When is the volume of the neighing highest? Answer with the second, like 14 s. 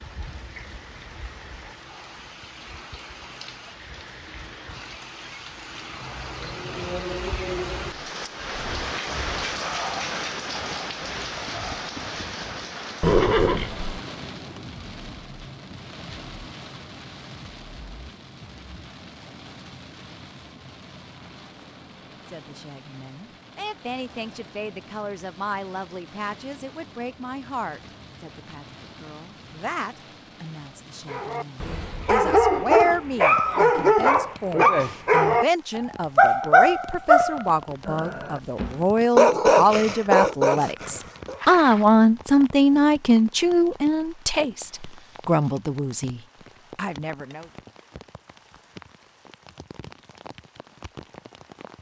13 s.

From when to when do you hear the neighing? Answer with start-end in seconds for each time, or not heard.
13.0-14.0, 40.8-41.9.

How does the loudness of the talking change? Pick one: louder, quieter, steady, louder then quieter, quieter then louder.
louder.